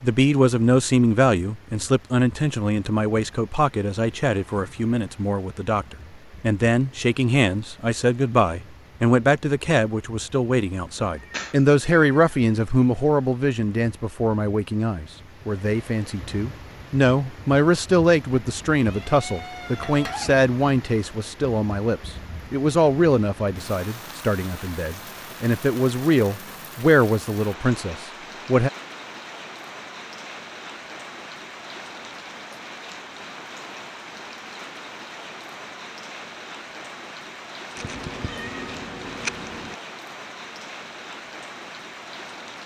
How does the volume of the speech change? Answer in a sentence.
The volume of the speech stays about the same.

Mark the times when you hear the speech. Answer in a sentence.
You can hear the speech from 0.0 to 28.7 s.